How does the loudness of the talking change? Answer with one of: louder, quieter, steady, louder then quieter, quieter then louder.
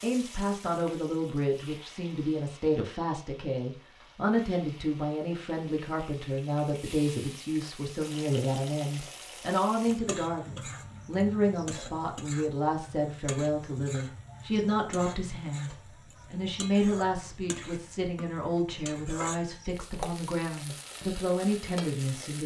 steady.